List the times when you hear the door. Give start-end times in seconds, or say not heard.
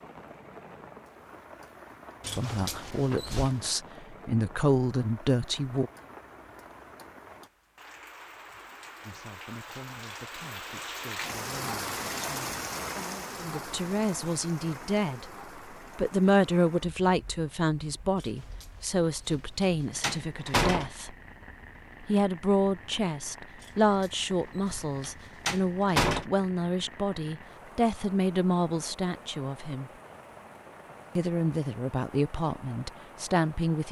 2.2-3.6, 18.2-18.6, 19.2-20.9, 23.6-26.2.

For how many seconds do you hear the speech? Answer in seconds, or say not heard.
26 s.